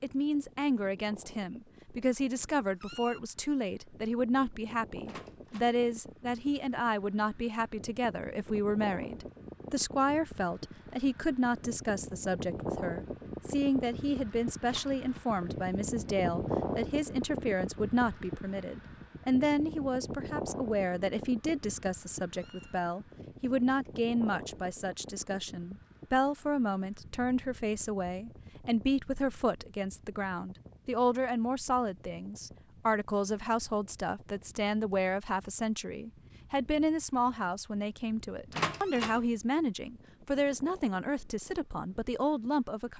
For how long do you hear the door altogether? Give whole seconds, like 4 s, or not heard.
2 s.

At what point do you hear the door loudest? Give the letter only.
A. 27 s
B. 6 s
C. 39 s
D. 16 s
C.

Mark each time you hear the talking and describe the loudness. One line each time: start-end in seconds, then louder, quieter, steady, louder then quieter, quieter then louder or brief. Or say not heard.
0.0-42.9 steady.